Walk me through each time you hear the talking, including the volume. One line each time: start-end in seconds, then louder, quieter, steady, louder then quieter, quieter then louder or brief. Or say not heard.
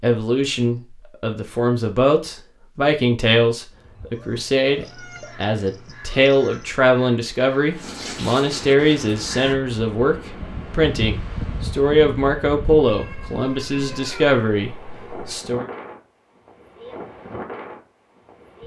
0.0-15.7 steady.